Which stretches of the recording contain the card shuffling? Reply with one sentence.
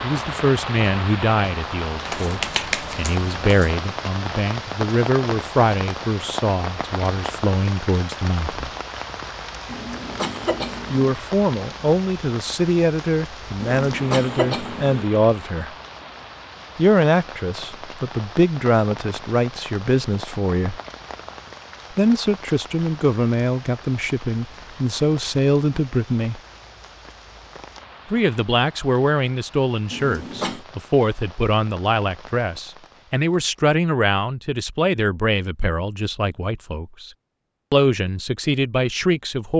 The card shuffling can be heard from 2.0 to 3.8 s.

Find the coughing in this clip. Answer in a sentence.
The coughing can be heard from 9.7 to 11.2 s, from 13.6 to 15.1 s and from 29.9 to 30.6 s.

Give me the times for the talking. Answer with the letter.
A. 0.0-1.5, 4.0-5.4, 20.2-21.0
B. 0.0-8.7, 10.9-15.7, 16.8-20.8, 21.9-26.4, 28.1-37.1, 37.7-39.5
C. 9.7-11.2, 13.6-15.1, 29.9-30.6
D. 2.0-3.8
B.